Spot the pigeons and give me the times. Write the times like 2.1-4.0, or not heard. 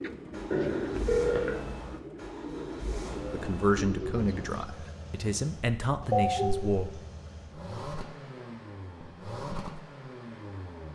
0.0-4.7.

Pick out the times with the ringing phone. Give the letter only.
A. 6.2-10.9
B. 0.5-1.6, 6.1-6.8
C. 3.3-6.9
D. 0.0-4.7
B.